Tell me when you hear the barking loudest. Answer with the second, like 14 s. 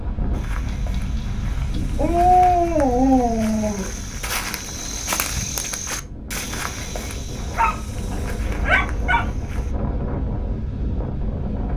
2 s.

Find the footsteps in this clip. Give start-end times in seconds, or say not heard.
0.3-9.8.